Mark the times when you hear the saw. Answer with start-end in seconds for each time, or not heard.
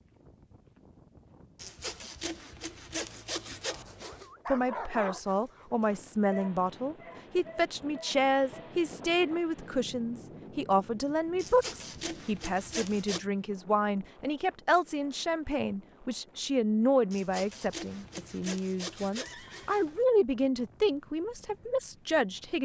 1.6-4.3, 11.3-13.2, 17.1-20.1.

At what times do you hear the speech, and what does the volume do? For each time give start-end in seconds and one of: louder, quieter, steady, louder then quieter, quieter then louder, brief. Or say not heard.
4.5-22.5 steady.